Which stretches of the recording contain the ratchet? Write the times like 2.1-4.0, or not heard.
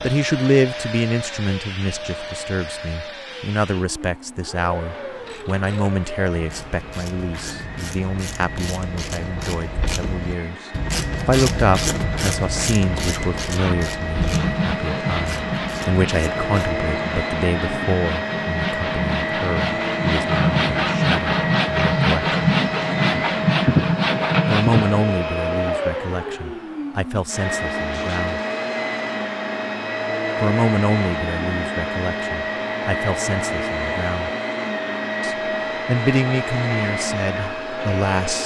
5.1-16.4.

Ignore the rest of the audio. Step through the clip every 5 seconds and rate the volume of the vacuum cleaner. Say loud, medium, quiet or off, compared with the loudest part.
medium, medium, medium, loud, loud, loud, loud, loud.